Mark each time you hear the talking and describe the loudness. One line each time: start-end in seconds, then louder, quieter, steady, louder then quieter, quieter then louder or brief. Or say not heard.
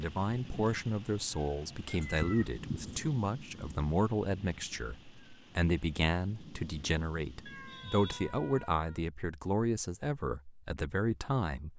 0.0-11.7 steady.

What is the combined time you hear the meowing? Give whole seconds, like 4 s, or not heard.
3 s.